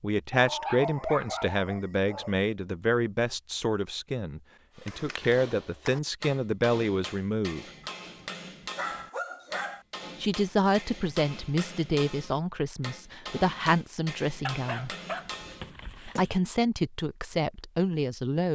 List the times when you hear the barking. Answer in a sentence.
The barking can be heard from 0.3 to 2.3 s, from 7.8 to 9.8 s and from 14.4 to 16.4 s.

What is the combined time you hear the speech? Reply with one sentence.
You can hear the speech for 15 seconds altogether.